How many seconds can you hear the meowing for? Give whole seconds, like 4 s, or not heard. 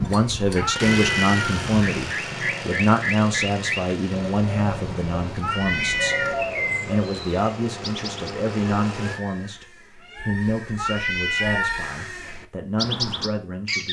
3 s.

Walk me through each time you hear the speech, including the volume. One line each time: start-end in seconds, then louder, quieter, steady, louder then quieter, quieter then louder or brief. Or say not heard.
0.0-13.8 quieter.